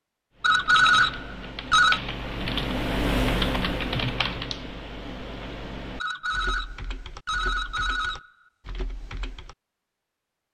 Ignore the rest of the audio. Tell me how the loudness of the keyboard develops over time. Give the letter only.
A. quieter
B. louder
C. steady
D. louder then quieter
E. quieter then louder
D.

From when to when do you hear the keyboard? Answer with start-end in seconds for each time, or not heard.
0.4-9.6.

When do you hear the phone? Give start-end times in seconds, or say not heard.
0.4-2.0, 6.0-8.3.